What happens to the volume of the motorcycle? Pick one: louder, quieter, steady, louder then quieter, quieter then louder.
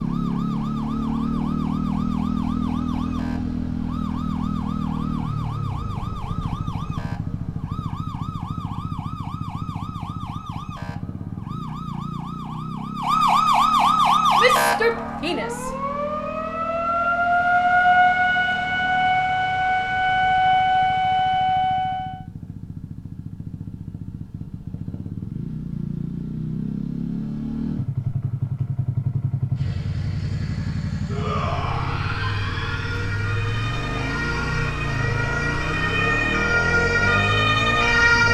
quieter then louder.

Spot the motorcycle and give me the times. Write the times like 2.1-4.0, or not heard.
0.0-38.2.